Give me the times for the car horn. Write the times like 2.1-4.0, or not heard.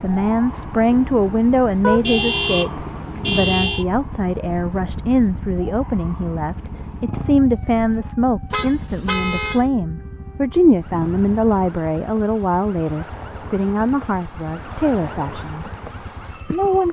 1.8-3.9, 8.5-9.7.